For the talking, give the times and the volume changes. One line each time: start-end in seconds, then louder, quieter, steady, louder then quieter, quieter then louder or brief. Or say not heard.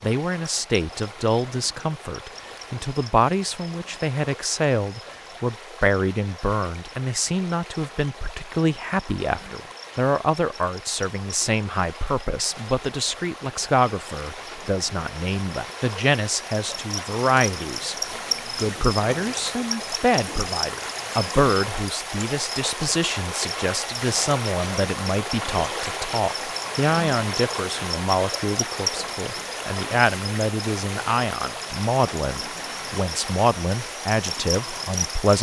0.0-17.9 steady
18.6-35.3 steady.